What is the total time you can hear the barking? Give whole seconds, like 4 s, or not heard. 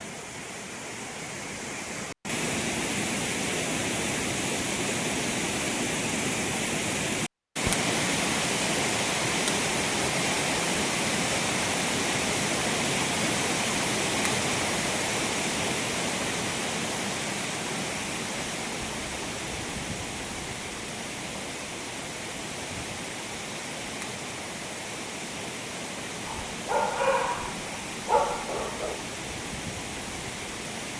3 s.